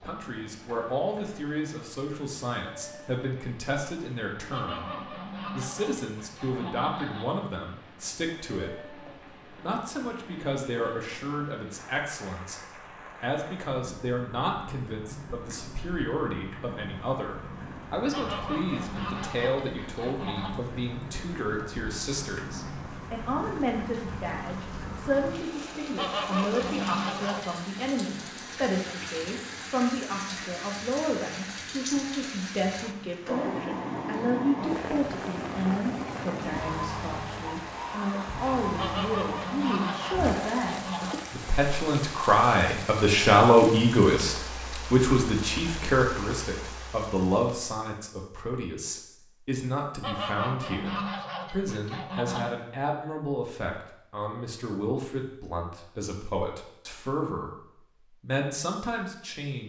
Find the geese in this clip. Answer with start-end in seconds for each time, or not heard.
4.5-7.4, 18.1-20.6, 25.9-27.6, 38.8-41.1, 50.0-52.5.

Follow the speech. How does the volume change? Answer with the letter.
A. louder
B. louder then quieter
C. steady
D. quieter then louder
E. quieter
B.